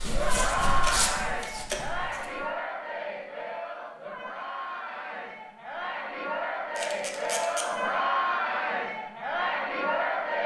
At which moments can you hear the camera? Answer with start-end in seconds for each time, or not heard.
0.8-2.2, 6.8-7.7.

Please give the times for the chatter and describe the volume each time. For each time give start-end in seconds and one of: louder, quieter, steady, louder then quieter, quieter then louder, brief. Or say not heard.
0.0-10.4 quieter then louder.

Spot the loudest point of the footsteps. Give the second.
1 s.